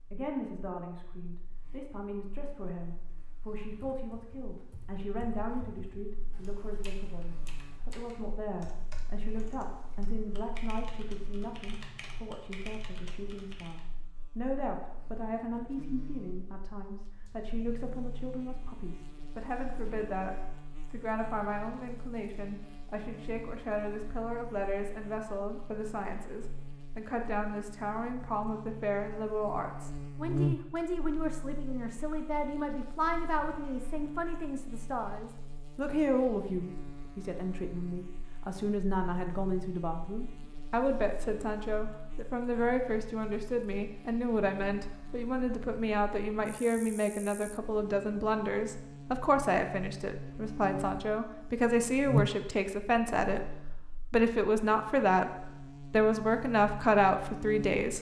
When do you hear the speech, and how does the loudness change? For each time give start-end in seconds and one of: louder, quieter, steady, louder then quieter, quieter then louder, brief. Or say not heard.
0.1-57.9 louder.